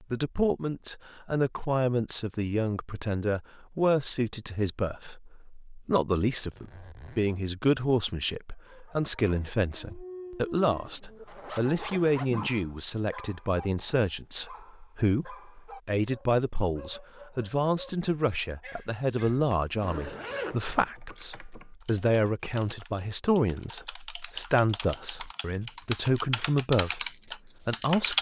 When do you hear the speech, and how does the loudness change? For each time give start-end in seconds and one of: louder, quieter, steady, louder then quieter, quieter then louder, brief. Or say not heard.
0.0-28.1 steady.